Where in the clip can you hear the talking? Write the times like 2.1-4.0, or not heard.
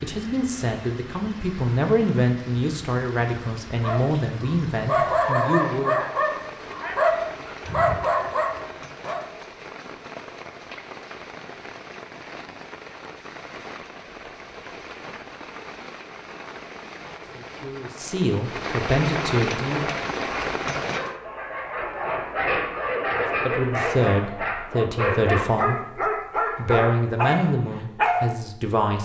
0.0-6.0, 17.1-19.9, 23.1-28.9.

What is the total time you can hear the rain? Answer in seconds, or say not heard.
21 s.